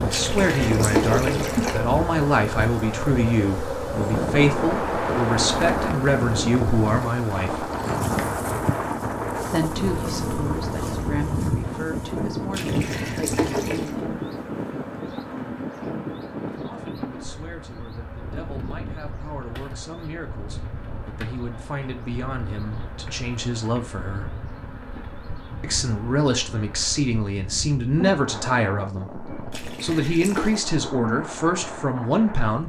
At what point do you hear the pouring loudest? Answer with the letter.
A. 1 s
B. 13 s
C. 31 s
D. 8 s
A.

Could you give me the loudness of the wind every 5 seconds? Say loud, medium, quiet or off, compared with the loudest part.
loud, loud, loud, medium, quiet, medium, medium.